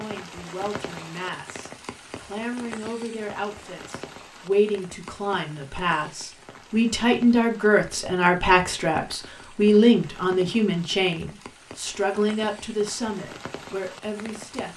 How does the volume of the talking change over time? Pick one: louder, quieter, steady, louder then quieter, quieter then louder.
louder then quieter.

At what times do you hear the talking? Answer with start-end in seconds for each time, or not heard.
0.0-14.7.